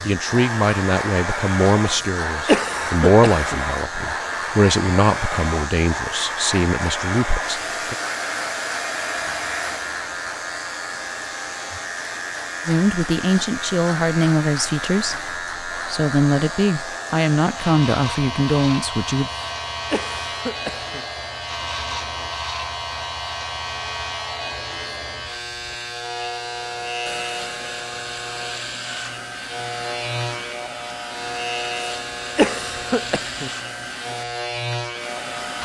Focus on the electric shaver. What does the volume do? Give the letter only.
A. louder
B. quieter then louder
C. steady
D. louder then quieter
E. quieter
C.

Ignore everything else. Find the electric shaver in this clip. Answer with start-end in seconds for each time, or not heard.
0.0-35.6.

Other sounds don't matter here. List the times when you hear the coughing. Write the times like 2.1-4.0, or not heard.
1.9-3.6, 19.3-21.1, 31.8-33.5.